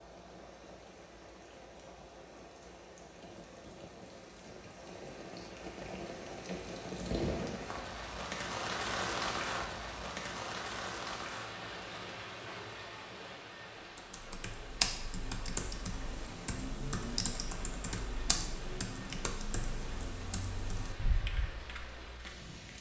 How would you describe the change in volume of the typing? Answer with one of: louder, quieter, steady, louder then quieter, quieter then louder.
quieter.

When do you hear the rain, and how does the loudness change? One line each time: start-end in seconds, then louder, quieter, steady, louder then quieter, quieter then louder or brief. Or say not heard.
0.0-22.7 louder then quieter.